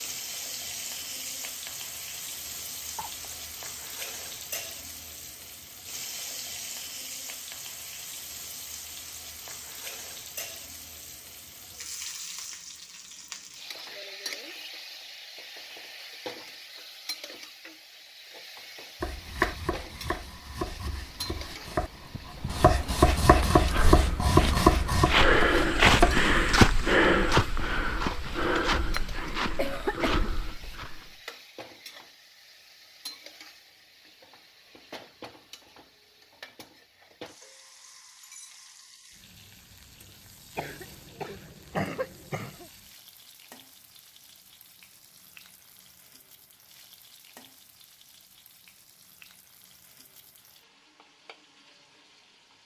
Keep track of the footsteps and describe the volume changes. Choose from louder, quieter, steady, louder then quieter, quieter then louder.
louder then quieter.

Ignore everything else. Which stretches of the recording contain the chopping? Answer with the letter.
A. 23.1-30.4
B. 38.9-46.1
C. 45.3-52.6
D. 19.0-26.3
D.